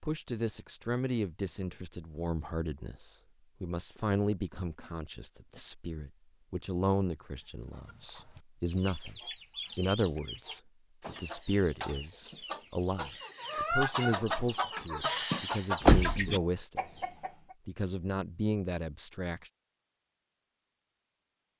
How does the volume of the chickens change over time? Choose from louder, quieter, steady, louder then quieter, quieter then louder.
louder.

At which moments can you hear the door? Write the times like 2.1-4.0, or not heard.
15.8-16.2.